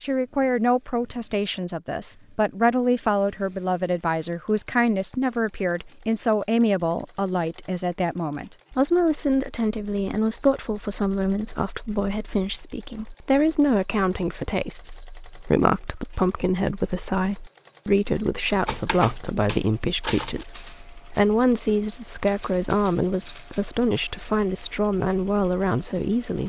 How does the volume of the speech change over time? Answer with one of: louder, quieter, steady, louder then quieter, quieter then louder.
steady.